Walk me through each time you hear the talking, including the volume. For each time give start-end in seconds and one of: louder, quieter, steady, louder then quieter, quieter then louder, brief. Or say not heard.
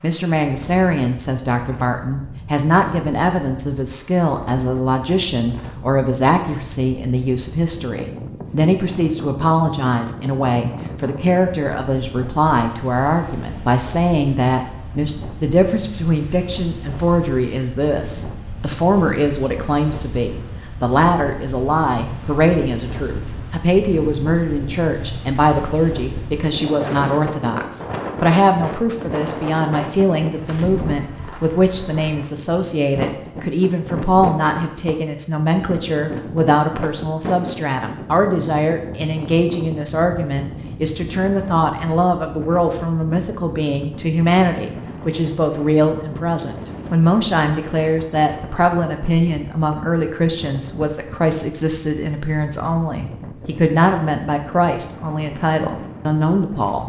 0.0-56.8 steady.